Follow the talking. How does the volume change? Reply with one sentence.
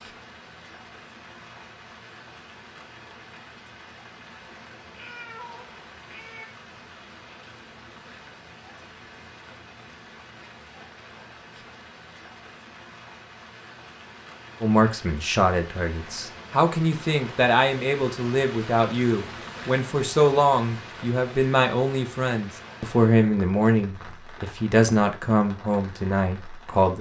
The volume of the talking stays about the same.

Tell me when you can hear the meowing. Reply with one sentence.
The meowing can be heard from 4.9 to 6.5 s.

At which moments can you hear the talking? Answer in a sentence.
The talking can be heard from 14.6 to 26.9 s.